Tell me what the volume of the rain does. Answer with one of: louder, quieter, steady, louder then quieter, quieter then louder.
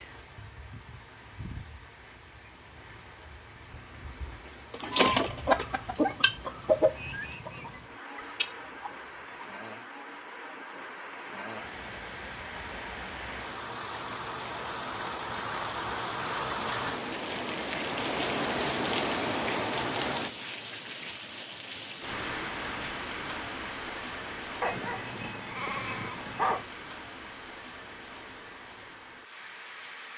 louder then quieter.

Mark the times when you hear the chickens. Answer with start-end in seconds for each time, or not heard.
4.7-9.6.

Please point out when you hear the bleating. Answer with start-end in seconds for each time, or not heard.
24.6-26.6.